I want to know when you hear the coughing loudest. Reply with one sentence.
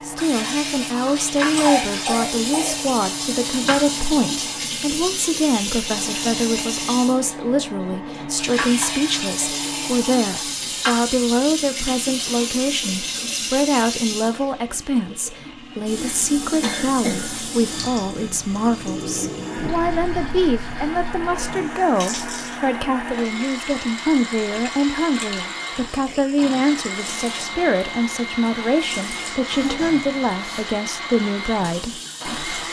The volume of the coughing peaks at 2 seconds.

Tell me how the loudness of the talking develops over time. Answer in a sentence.
The volume of the talking stays about the same.